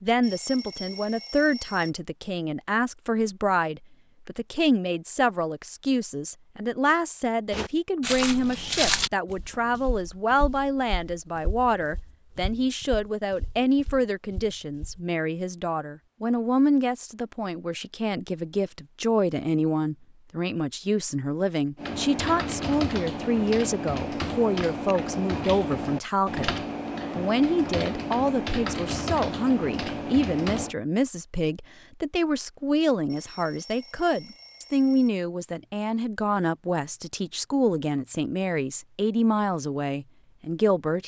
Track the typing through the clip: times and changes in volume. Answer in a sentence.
The typing can be heard from 21.8 to 30.8 s, at a steady volume.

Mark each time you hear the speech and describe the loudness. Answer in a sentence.
The speech can be heard from 0.0 to 26.5 s, at a steady volume; and from 27.1 to 41.0 s, at a steady volume.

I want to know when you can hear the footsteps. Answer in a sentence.
You can hear the footsteps from 7.5 to 15.0 s.